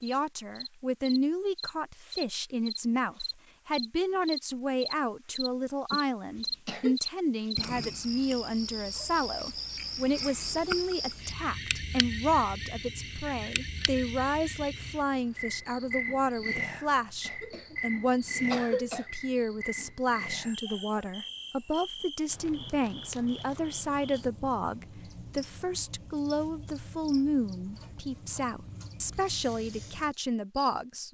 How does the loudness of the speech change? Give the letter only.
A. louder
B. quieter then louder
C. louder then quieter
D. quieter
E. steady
E.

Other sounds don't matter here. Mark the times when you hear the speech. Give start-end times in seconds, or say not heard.
0.0-31.0.